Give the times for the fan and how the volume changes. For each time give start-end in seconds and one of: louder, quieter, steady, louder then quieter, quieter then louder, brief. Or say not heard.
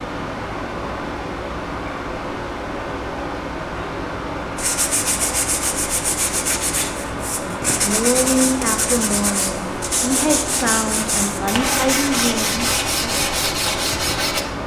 0.0-14.6 steady.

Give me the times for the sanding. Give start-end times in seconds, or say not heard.
4.5-14.4.